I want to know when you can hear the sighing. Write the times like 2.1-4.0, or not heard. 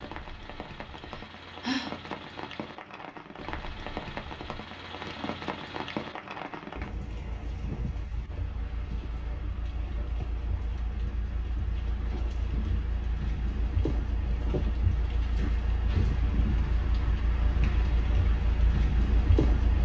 0.9-1.9.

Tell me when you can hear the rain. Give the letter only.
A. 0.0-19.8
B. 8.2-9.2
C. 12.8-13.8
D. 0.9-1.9
A.